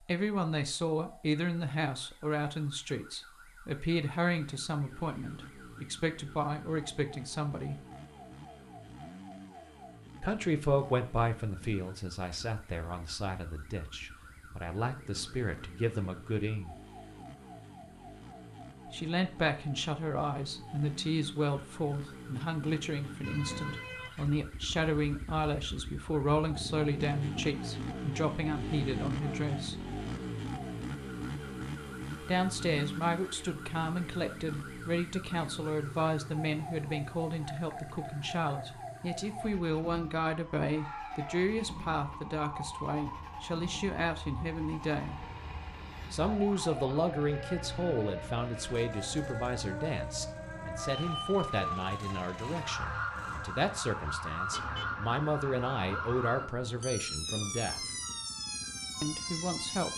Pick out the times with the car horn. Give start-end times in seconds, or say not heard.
23.2-24.2, 54.5-55.0.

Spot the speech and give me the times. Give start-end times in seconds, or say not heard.
0.1-7.8, 10.2-16.8, 18.9-29.8, 32.2-45.1, 46.1-57.9, 59.0-59.9.